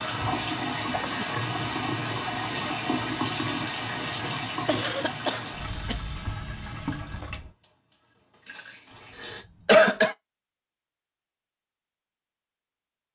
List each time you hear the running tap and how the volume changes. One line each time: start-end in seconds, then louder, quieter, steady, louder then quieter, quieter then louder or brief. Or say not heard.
0.0-9.4 quieter.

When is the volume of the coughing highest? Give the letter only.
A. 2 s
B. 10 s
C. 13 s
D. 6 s
B.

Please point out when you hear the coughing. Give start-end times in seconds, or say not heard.
0.9-1.4, 4.7-6.0, 9.3-10.2.